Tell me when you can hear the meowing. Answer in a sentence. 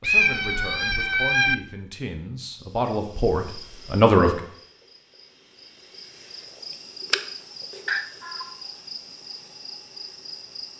You can hear the meowing from 0.0 to 1.6 s and from 7.8 to 8.6 s.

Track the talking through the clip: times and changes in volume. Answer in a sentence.
You can hear the talking from 0.0 to 4.4 s, getting louder.